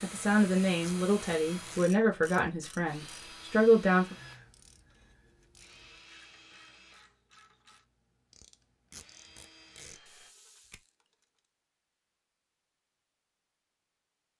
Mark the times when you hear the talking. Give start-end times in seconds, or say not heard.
0.0-4.2.